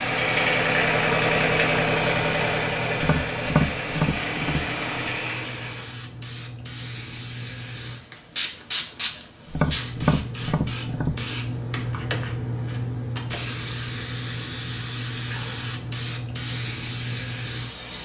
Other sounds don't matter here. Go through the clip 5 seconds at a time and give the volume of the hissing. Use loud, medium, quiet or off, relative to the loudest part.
medium, loud, loud, loud.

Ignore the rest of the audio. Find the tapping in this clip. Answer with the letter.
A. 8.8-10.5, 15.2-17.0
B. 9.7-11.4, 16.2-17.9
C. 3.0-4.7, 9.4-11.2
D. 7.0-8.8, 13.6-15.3
C.